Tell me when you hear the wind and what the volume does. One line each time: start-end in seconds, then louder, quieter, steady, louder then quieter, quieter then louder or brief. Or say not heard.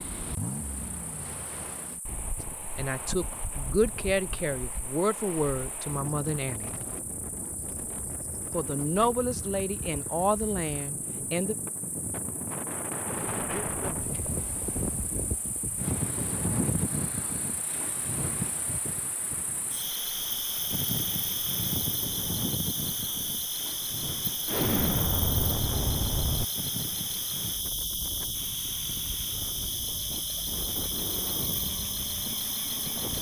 0.0-33.1 louder then quieter.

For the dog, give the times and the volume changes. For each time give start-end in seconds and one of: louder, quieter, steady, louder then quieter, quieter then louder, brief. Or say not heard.
not heard.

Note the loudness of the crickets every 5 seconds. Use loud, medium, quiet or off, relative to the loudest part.
quiet, quiet, quiet, medium, loud, loud, loud.